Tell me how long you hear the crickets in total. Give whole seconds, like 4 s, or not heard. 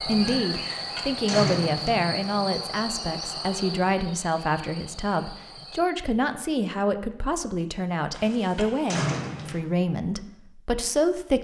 6 s.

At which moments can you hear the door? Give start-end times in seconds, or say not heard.
0.5-2.0, 8.1-9.6.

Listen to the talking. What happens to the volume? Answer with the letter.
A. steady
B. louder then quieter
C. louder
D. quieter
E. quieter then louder
A.